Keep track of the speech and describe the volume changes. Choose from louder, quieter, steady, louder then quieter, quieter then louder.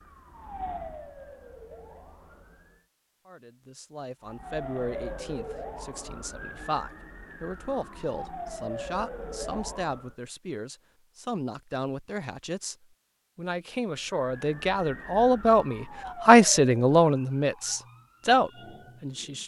louder.